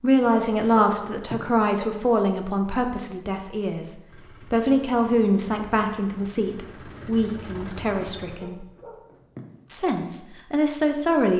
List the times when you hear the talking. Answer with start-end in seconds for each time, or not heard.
0.0-8.7, 9.7-11.3.